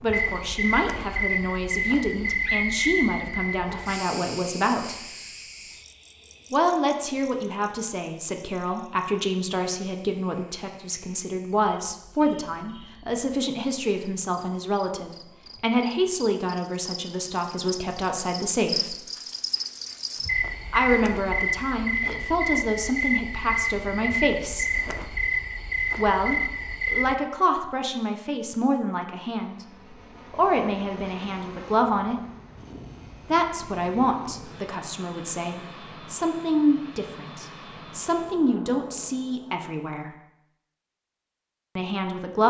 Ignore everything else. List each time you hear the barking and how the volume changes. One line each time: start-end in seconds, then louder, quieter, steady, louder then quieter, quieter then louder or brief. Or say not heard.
not heard.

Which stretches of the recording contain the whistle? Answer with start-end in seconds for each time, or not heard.
2.4-3.8.